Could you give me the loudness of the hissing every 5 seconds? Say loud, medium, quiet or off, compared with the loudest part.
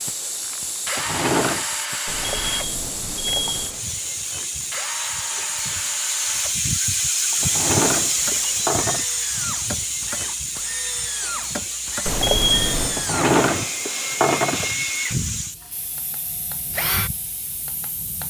medium, loud, medium, quiet.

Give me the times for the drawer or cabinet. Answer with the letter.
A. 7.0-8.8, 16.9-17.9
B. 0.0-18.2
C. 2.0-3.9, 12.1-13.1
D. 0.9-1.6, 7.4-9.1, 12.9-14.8
D.